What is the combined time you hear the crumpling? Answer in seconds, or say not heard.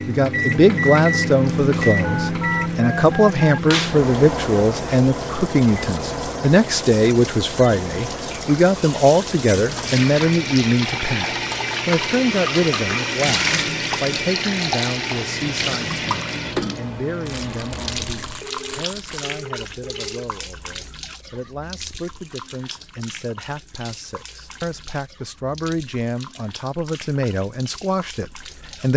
2 s.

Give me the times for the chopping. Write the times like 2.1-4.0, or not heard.
not heard.